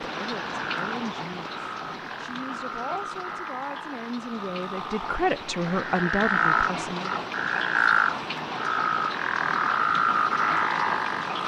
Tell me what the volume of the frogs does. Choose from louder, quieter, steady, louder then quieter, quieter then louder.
louder.